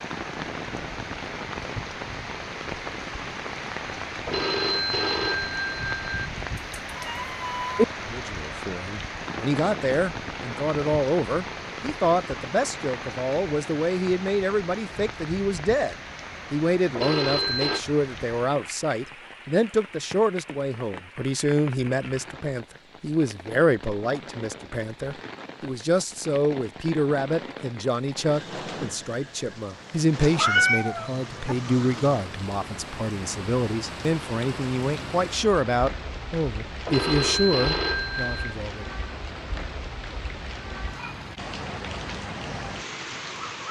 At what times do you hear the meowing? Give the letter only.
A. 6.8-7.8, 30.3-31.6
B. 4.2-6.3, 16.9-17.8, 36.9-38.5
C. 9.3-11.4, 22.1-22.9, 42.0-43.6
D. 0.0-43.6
A.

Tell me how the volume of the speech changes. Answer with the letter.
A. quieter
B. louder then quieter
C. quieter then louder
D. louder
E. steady
E.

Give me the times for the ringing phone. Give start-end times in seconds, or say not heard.
4.2-6.3, 16.9-17.8, 36.9-38.5.